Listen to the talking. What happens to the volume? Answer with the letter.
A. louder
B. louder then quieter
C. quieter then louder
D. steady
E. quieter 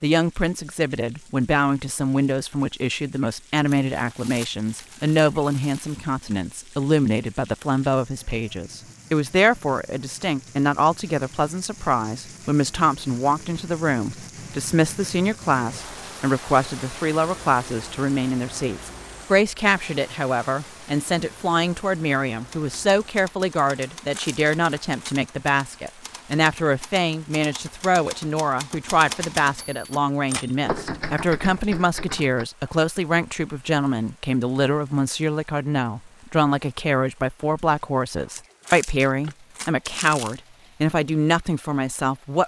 D.